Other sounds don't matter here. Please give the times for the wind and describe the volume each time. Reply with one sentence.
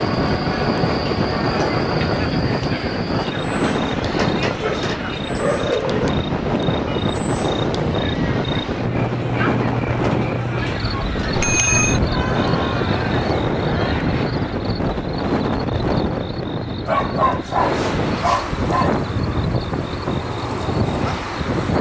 You can hear the wind from 0.0 to 21.7 s, at a steady volume.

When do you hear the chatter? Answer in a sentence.
You can hear the chatter from 0.0 to 14.2 s.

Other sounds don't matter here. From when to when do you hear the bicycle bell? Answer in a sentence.
The bicycle bell can be heard from 11.3 to 12.0 s.